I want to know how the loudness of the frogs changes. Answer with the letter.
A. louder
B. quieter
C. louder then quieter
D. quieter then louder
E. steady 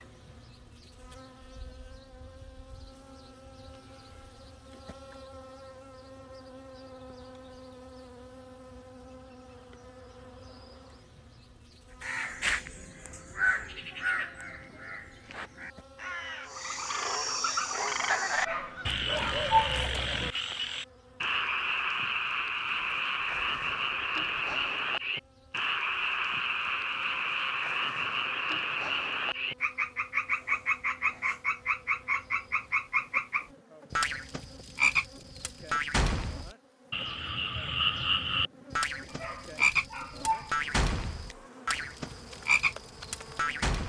E.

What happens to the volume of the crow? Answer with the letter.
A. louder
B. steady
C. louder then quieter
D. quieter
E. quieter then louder
D.